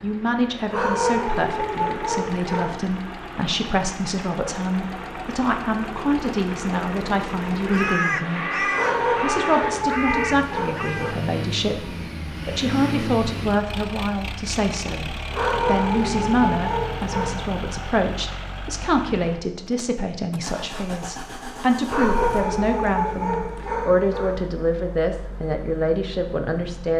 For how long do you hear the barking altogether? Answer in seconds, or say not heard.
9 s.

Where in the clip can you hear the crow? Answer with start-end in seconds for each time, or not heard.
7.7-11.2.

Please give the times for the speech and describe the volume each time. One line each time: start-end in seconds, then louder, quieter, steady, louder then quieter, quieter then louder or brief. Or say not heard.
0.0-26.9 steady.